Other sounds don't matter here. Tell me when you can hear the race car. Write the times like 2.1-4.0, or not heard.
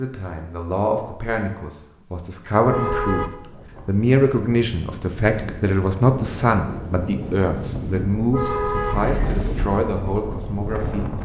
not heard.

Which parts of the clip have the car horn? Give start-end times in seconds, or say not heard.
2.6-3.3, 8.3-9.5.